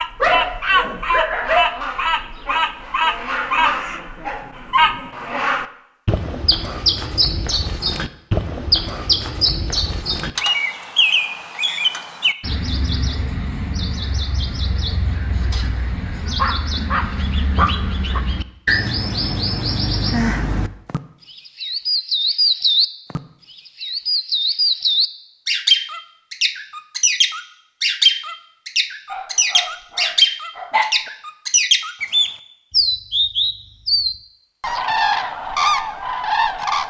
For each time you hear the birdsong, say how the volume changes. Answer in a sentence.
You can hear the birdsong from 0.0 to 23.2 s, getting quieter then louder; and from 23.8 to 36.8 s, at a steady volume.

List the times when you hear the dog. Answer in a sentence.
The dog can be heard from 0.2 to 1.8 s, from 16.4 to 18.2 s and from 29.1 to 30.9 s.